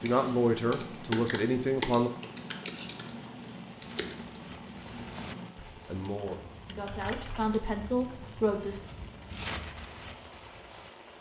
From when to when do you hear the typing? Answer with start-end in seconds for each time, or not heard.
0.0-7.6.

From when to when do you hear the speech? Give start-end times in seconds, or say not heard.
0.0-2.1, 5.8-8.8.